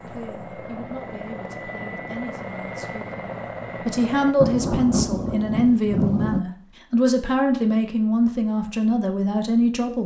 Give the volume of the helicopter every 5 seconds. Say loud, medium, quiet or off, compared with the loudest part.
loud, off.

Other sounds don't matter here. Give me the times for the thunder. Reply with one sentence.
The thunder can be heard from 4.4 to 6.4 s.